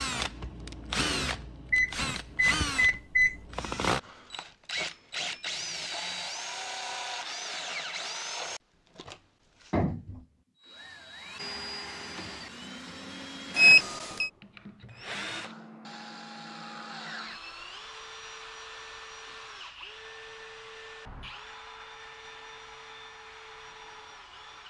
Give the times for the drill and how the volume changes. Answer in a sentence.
You can hear the drill from 0.0 to 24.6 s, getting quieter.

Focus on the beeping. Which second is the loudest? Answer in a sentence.
The volume of the beeping peaks at 14 seconds.